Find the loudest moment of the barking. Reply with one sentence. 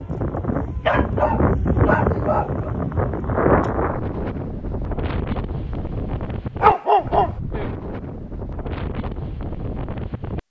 The volume of the barking peaks at 7 seconds.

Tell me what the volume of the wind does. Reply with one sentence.
The loudness of the wind goes down.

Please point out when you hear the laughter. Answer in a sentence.
The laughter can't be heard in this clip.